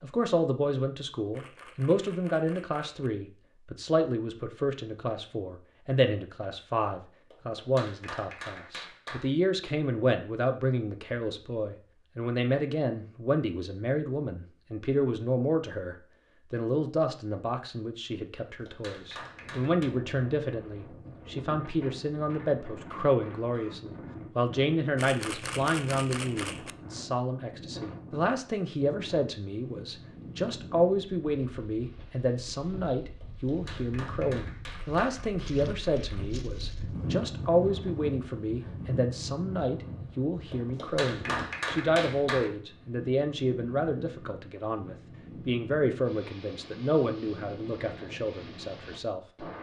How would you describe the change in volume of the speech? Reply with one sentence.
The loudness of the speech stays about the same.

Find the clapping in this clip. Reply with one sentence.
You can hear the clapping from 7.3 to 9.3 s, from 18.4 to 19.9 s, from 33.2 to 35.2 s and from 40.5 to 42.5 s.